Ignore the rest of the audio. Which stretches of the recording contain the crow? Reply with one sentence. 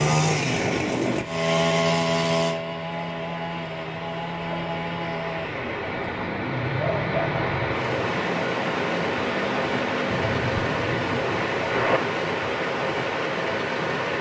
The crow can't be heard in this clip.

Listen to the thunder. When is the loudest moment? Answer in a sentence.
The loudest moment of the thunder is at 12 seconds.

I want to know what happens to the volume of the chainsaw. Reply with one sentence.
The loudness of the chainsaw goes down.